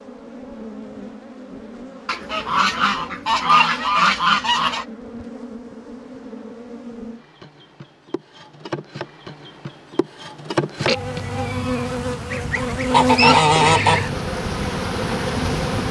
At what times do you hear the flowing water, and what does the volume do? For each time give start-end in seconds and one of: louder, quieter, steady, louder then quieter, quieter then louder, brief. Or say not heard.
not heard.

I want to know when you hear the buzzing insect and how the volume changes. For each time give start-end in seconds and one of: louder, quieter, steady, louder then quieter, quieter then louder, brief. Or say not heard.
0.0-15.8 louder.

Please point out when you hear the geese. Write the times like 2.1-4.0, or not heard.
2.0-4.8, 12.3-14.0.